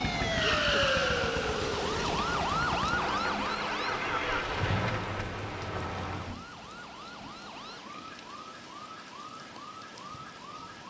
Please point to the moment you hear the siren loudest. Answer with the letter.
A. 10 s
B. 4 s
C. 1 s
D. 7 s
C.